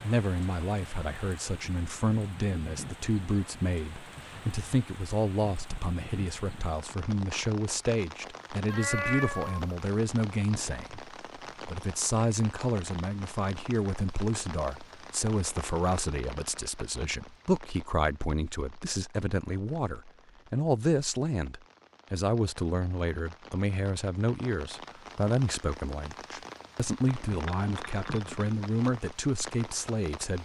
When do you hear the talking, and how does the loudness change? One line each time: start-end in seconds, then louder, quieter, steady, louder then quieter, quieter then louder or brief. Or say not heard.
0.0-30.4 steady.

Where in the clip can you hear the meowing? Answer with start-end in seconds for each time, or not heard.
8.7-9.6.